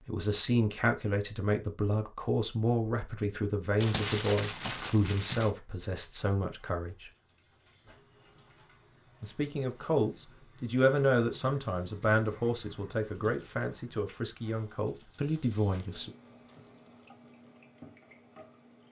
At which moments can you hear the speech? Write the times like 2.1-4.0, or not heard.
0.1-7.1, 9.2-16.1.